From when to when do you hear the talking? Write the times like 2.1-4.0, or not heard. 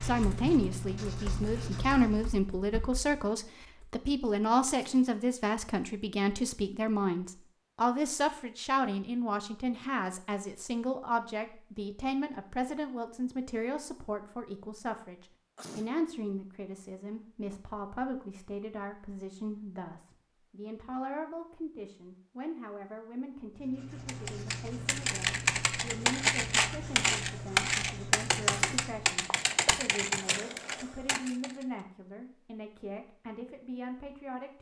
0.0-34.5.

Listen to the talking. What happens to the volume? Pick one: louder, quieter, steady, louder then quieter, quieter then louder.
quieter.